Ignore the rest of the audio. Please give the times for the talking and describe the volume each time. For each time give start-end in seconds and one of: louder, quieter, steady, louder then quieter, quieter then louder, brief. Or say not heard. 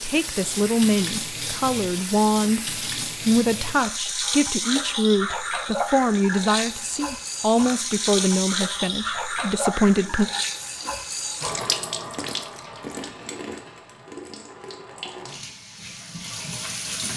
0.0-10.3 steady.